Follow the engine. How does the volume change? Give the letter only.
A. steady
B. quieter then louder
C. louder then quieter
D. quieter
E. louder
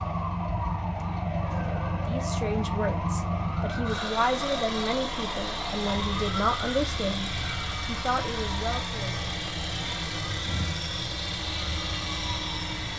A.